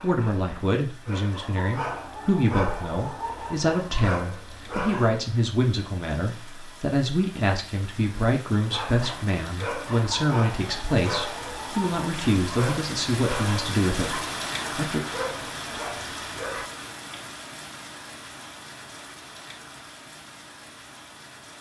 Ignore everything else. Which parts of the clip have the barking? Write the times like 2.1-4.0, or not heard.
0.0-5.2, 8.7-16.7.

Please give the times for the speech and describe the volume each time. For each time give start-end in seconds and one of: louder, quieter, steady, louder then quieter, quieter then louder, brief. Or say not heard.
0.0-15.0 steady.